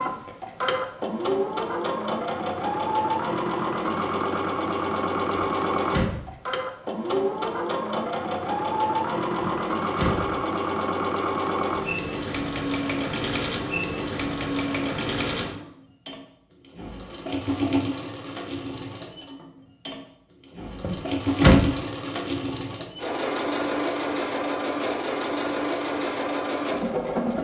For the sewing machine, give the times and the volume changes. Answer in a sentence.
The sewing machine can be heard from 0.0 to 27.3 s, at a steady volume.